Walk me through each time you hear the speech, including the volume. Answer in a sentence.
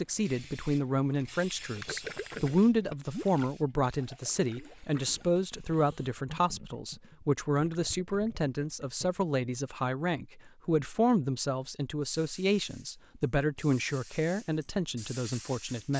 The speech can be heard from 0.0 to 15.9 s, at a steady volume.